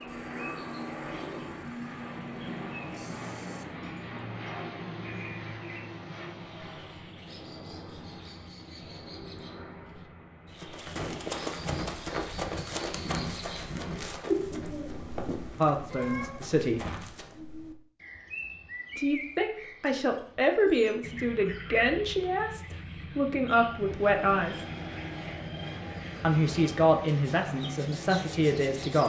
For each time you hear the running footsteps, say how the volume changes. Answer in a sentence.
The running footsteps can be heard from 10.6 to 17.4 s, getting quieter.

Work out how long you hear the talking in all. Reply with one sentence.
You can hear the talking for 10 seconds altogether.